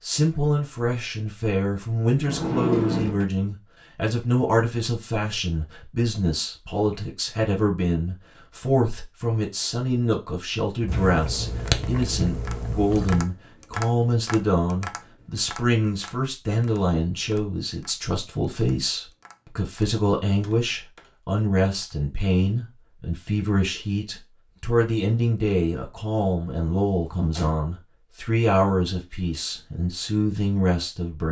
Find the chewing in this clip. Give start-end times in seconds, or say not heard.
10.8-13.3.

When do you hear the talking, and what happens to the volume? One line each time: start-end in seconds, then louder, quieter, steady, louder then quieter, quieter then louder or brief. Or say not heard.
0.0-31.2 steady.